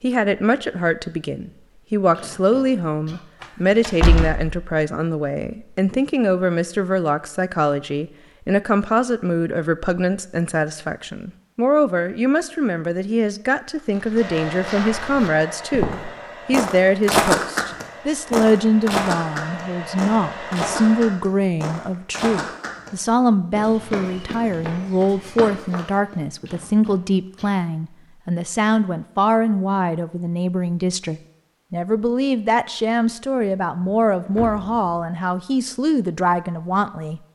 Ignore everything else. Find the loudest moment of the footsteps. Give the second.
17 s.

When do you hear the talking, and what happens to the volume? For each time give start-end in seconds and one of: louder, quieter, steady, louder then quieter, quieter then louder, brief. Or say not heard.
0.0-37.2 steady.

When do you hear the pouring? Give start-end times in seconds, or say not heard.
not heard.